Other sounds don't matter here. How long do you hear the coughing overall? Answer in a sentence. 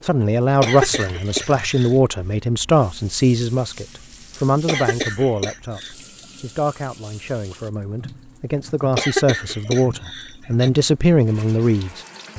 You can hear the coughing for 4 seconds altogether.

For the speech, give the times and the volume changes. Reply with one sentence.
The speech can be heard from 0.1 to 12.3 s, getting quieter then louder.